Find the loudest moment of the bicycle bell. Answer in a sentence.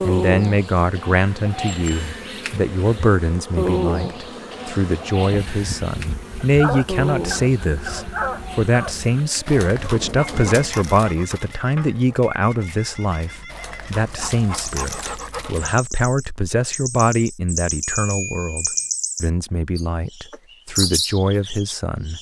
The loudest moment of the bicycle bell is at 18 seconds.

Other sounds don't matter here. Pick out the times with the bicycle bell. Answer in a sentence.
The bicycle bell can be heard from 1.7 to 2.1 s and from 17.8 to 18.9 s.